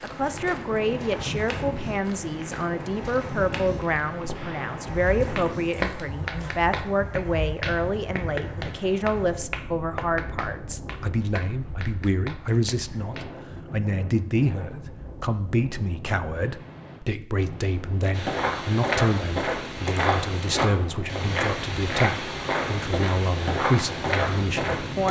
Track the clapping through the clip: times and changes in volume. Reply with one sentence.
You can hear the clapping from 4.3 to 13.3 s, getting quieter.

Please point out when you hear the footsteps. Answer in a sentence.
The footsteps can be heard from 0.0 to 7.5 s and from 18.1 to 25.0 s.